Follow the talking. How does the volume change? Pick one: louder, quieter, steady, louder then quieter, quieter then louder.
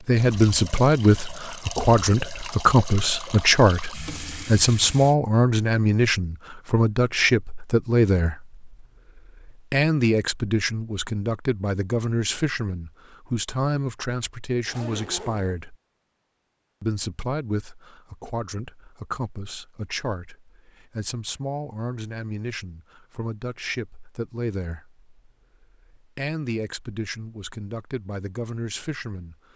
quieter.